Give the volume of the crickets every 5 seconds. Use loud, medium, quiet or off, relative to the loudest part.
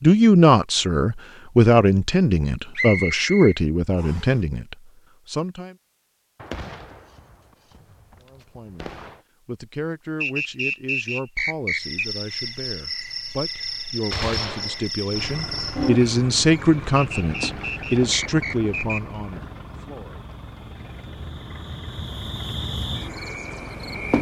off, off, loud, loud, loud.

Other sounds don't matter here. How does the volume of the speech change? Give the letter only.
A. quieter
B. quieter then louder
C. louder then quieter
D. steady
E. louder
B.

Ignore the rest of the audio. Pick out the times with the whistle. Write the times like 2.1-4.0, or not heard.
2.8-4.3, 10.2-12.1, 16.9-19.0.